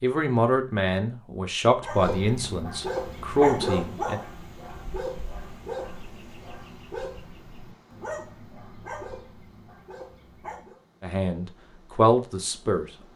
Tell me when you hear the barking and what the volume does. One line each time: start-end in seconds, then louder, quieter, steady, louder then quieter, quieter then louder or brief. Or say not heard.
1.8-10.8 quieter.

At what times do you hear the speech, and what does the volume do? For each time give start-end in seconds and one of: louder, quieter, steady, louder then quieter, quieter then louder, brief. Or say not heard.
0.0-4.2 quieter then louder
11.0-12.8 brief.